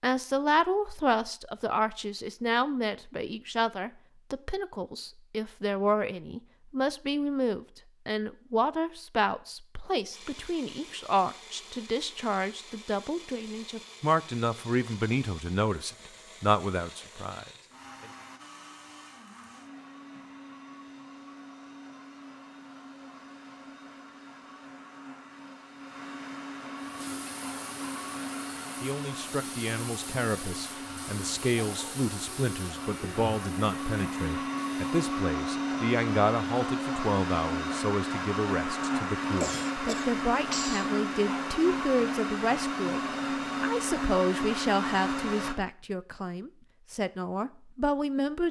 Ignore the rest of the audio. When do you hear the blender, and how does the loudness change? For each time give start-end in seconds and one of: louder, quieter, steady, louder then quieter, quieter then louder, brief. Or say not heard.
10.1-45.5 louder.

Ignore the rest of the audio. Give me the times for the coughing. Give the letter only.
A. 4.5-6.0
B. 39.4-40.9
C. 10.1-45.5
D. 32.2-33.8
B.